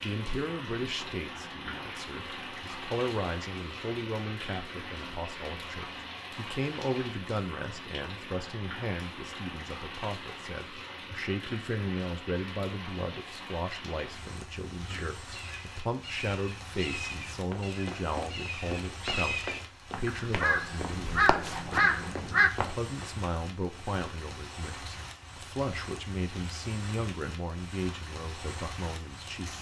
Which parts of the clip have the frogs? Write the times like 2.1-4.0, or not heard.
not heard.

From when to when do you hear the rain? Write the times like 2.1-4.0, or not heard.
0.0-29.5.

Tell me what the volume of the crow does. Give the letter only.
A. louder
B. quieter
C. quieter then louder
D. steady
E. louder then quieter
A.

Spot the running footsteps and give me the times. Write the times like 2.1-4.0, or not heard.
17.5-23.1.